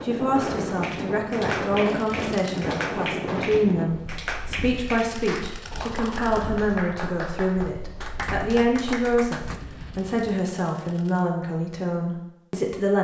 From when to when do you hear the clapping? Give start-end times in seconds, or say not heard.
0.8-9.6.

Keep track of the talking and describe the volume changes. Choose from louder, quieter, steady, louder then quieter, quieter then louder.
steady.